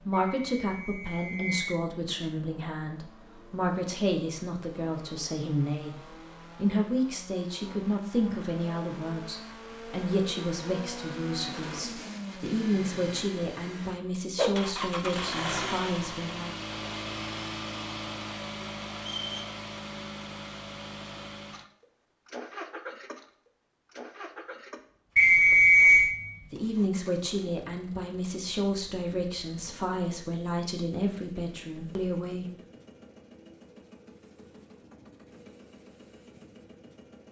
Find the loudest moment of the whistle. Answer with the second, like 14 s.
26 s.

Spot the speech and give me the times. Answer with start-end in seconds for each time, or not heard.
0.0-16.6, 26.5-32.5.